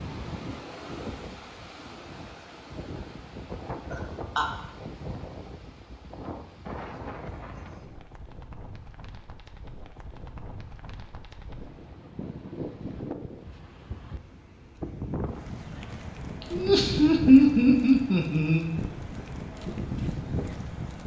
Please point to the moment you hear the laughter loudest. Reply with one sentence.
The loudest moment of the laughter is at 17 seconds.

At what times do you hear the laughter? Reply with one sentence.
You can hear the laughter from 3.9 to 4.6 s and from 16.5 to 18.6 s.